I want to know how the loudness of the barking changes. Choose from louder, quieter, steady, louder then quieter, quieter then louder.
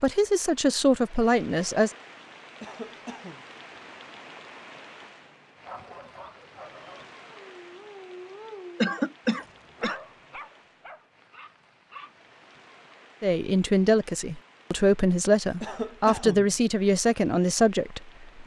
louder then quieter.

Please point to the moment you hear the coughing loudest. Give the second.
9 s.